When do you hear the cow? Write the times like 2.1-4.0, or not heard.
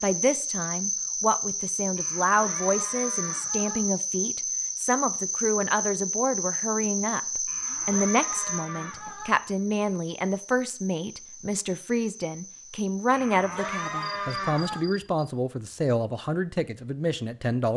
1.9-3.8, 7.5-9.3, 13.1-14.8.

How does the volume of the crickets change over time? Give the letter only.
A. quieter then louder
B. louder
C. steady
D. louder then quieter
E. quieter
E.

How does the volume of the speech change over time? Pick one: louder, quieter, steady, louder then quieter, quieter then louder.
steady.